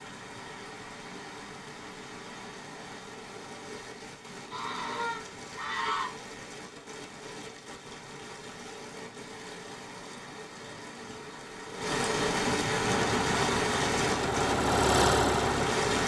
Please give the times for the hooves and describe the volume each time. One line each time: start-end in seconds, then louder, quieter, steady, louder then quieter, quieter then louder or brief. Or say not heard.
not heard.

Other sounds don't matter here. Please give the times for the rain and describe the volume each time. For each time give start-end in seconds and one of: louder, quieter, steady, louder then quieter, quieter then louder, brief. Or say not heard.
0.0-16.0 louder.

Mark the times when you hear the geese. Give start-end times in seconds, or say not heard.
4.5-6.1.